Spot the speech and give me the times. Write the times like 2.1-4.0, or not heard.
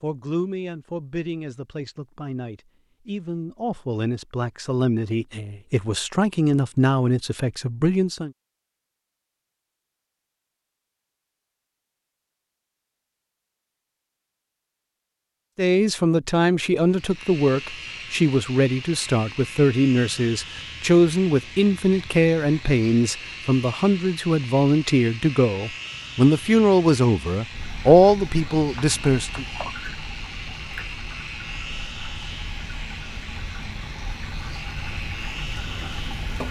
0.0-8.3, 15.6-29.4.